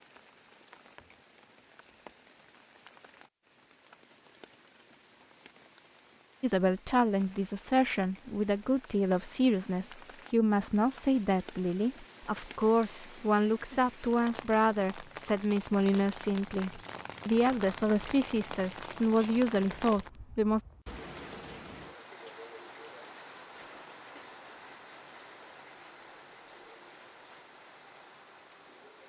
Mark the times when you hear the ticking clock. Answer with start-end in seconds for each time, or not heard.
not heard.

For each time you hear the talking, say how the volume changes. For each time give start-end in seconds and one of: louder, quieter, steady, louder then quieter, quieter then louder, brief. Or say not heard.
6.4-20.6 steady.